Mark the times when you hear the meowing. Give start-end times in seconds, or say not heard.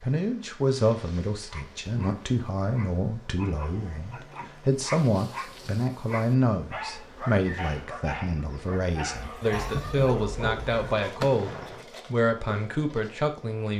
9.5-11.0.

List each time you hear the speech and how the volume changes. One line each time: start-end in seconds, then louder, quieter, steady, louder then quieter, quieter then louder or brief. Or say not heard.
0.0-13.7 steady.